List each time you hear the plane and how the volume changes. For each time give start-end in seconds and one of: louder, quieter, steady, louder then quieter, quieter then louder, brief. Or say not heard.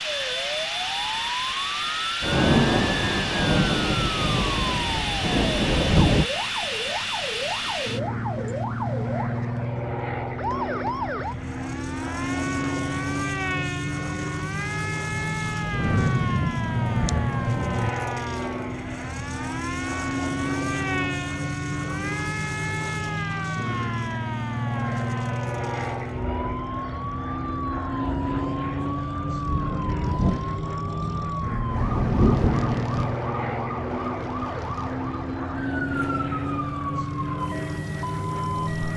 0.0-38.9 steady.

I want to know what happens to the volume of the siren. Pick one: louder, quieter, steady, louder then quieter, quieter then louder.
steady.